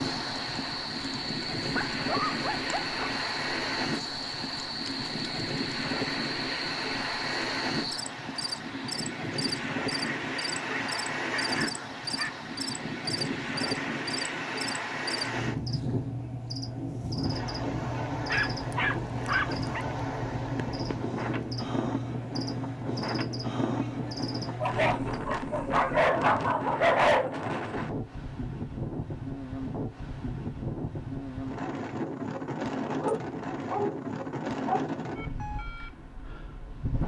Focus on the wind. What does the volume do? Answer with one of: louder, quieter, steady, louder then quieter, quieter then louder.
steady.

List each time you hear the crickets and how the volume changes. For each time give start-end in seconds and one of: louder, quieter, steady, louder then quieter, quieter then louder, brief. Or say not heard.
0.0-25.2 steady.